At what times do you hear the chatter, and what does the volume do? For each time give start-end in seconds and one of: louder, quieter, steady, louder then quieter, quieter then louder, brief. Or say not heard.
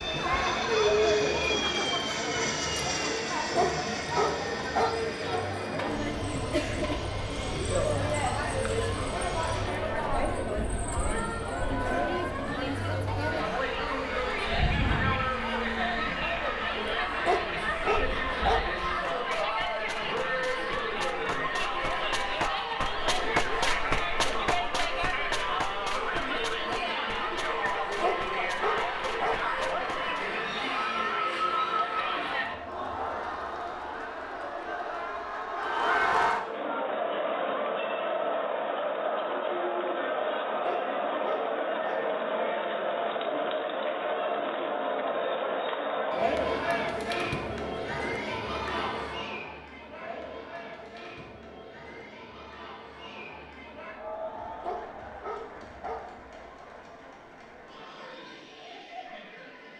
0.0-59.7 quieter.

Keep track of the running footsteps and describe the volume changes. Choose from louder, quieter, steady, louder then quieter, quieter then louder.
louder then quieter.